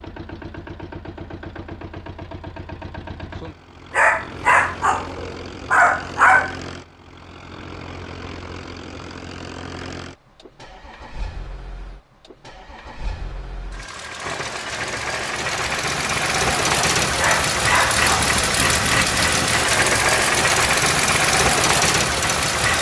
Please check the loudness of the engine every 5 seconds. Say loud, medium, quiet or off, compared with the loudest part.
quiet, quiet, quiet, loud, loud.